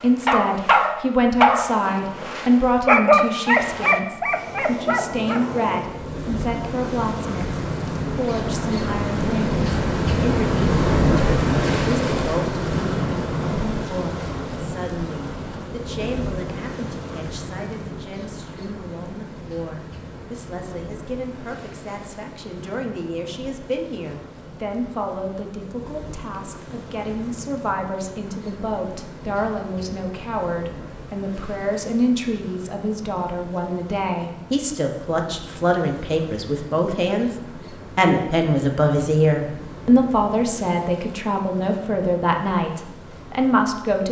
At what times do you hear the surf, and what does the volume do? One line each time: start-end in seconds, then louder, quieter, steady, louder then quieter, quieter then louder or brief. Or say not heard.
0.0-44.0 louder then quieter.